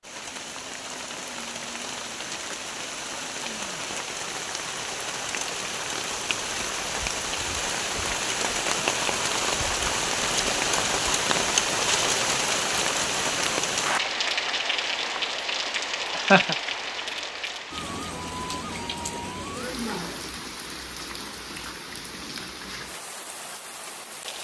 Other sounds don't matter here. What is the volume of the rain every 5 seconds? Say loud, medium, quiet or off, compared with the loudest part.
medium, loud, loud, medium, quiet.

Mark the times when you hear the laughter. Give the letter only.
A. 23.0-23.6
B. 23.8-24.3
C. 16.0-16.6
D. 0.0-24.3
C.